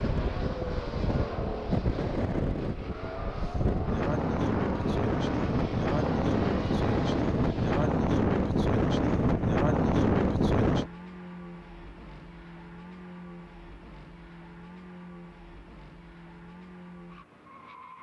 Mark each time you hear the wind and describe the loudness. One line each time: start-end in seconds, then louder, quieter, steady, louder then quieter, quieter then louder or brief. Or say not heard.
0.0-10.9 louder.